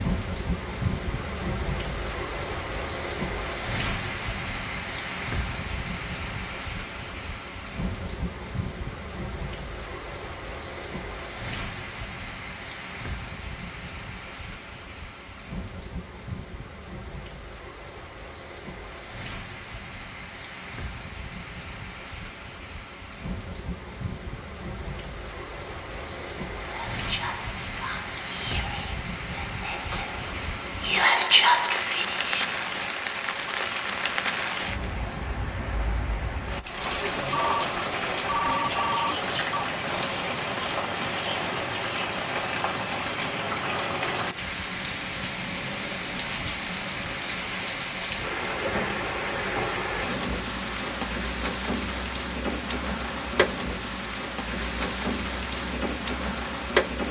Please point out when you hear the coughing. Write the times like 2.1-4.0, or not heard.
not heard.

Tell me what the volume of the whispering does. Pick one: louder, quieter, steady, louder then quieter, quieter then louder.
louder then quieter.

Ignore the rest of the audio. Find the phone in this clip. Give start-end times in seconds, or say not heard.
37.3-39.7.